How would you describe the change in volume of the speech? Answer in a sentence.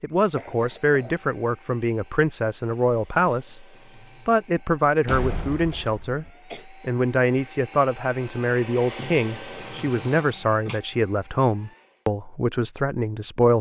The loudness of the speech stays about the same.